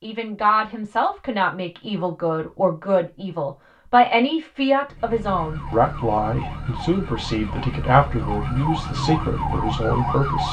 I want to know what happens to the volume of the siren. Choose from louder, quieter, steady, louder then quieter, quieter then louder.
louder.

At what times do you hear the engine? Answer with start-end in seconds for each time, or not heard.
4.8-10.4.